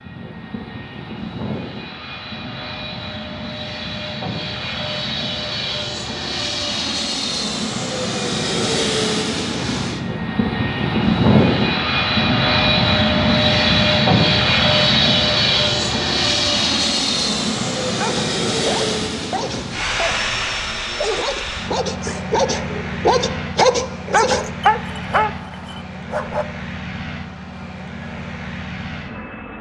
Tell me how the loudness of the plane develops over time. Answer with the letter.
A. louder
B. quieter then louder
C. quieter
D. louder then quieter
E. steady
D.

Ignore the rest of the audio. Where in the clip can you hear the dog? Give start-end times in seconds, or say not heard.
17.9-26.4.